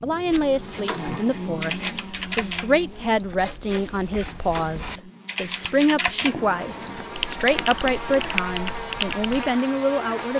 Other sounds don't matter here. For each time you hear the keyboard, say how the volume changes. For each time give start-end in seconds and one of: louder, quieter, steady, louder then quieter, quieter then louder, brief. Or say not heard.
0.7-9.3 quieter then louder.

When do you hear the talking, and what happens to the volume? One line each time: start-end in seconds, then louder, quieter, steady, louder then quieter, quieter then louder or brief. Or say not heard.
0.0-10.3 steady.